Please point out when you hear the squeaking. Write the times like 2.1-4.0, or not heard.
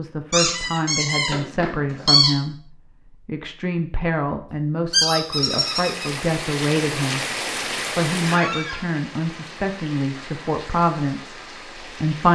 0.3-2.4, 4.9-6.1, 8.2-8.8.